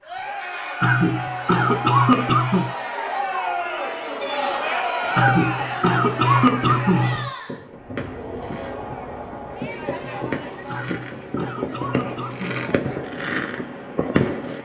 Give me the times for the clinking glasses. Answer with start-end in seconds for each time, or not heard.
not heard.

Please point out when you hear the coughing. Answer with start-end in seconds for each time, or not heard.
0.8-2.7, 5.2-7.3, 10.7-12.7.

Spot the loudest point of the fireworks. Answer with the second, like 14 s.
14 s.